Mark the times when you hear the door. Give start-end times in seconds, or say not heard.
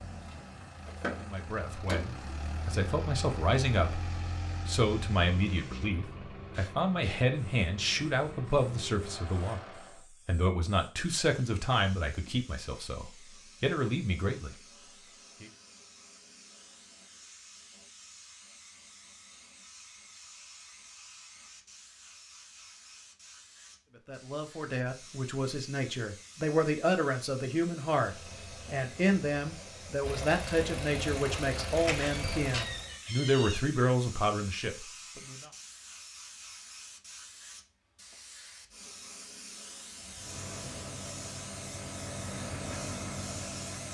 0.8-2.3, 31.8-33.6.